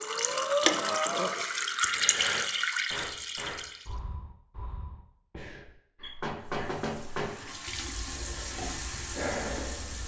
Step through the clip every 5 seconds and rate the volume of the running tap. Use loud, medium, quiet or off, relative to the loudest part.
loud, medium.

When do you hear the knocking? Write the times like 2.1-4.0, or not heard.
6.0-7.3.